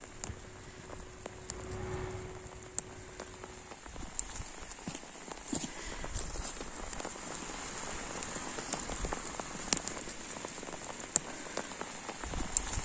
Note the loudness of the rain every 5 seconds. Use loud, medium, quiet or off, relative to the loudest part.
medium, loud, loud.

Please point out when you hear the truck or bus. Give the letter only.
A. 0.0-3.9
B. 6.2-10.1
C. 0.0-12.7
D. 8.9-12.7
A.